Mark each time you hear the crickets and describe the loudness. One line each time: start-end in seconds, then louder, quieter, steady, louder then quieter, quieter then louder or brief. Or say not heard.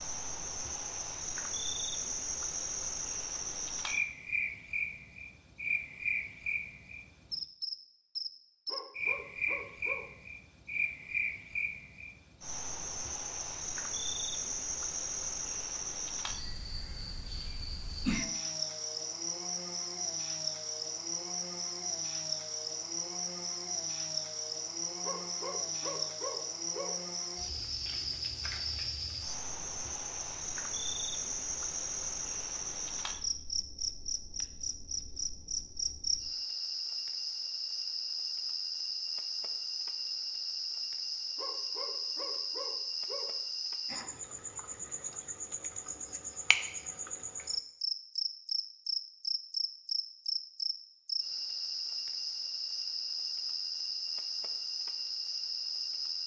0.0-56.2 steady.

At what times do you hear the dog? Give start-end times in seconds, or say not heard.
8.7-10.1, 25.0-27.0, 41.4-43.4.